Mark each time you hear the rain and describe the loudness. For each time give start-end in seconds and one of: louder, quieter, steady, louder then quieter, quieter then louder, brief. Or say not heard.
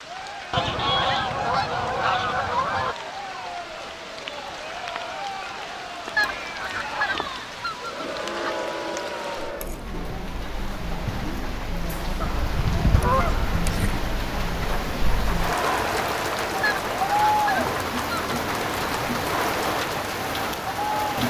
0.0-21.2 louder.